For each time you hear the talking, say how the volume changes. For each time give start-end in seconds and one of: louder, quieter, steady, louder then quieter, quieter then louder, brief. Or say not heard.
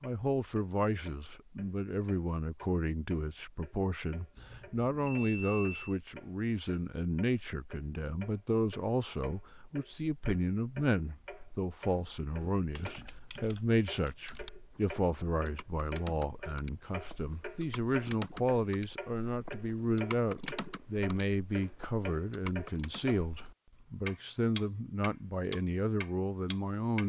0.0-27.0 steady.